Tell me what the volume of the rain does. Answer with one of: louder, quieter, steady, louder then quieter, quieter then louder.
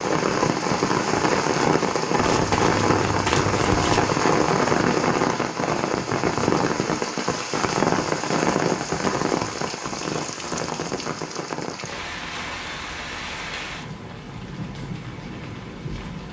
quieter.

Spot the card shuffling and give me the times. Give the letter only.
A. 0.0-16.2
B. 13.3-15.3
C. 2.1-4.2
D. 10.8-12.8
C.